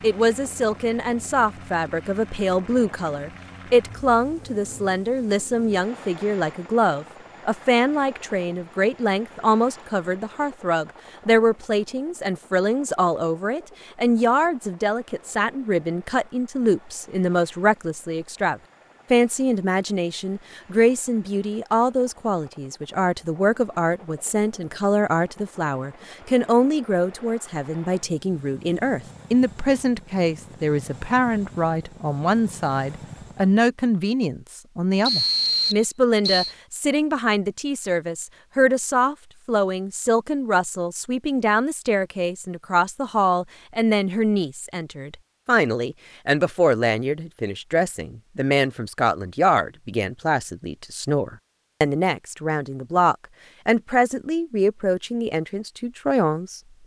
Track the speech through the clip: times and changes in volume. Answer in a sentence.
You can hear the speech from 0.0 to 56.8 s, at a steady volume.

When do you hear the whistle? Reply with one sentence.
The whistle can be heard from 35.0 to 36.5 s.